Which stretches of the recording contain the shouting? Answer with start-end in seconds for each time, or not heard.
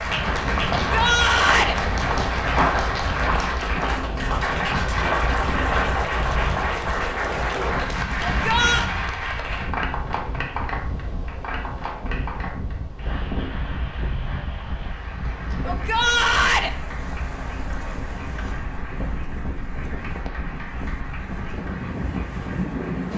0.8-1.8, 8.2-8.9, 15.7-16.7.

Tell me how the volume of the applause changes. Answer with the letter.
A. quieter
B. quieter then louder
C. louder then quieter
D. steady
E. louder
A.